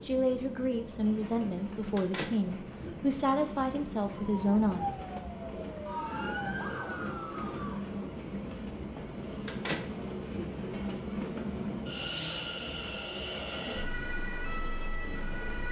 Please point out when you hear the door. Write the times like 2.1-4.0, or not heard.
1.9-3.0, 9.4-10.5.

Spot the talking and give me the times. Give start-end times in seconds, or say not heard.
0.0-4.8.